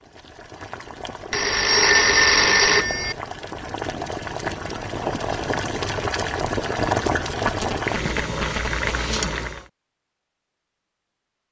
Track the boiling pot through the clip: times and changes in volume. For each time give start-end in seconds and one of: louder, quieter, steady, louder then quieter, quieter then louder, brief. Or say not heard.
0.0-9.7 louder.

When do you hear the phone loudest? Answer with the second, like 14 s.
2 s.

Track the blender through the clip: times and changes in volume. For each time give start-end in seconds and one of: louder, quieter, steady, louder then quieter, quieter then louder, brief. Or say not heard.
not heard.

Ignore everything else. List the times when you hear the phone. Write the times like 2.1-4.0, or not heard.
1.3-3.1, 7.0-8.8.